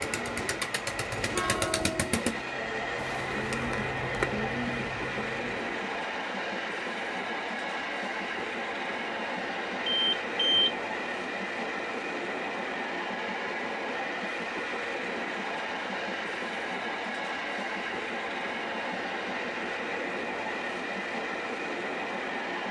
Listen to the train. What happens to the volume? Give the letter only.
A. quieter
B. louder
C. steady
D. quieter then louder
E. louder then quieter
C.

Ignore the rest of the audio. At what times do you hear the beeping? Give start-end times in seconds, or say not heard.
9.9-10.8.